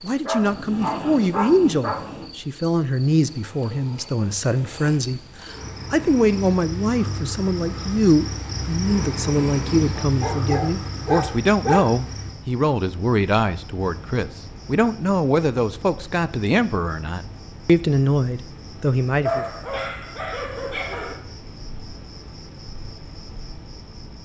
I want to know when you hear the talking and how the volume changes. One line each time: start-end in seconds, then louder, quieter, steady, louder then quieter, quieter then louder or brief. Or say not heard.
0.0-19.4 steady.